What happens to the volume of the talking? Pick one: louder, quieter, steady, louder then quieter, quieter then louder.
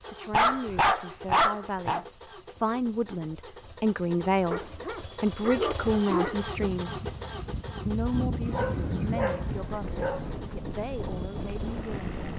louder then quieter.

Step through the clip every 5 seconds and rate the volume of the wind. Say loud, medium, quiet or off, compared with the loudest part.
off, loud, loud.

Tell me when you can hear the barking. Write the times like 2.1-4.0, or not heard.
0.3-2.0, 4.5-6.4, 8.4-10.2.